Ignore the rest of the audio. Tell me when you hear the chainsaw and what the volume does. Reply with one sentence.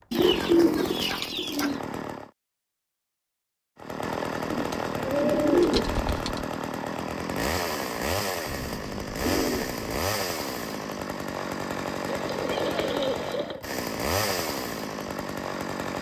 You can hear the chainsaw briefly from 0.1 to 2.3 s; and from 3.8 to 15.9 s, at a steady volume.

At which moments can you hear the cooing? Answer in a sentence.
You can hear the cooing from 0.1 to 1.8 s, from 4.5 to 6.5 s, from 8.4 to 10.0 s and from 12.1 to 13.6 s.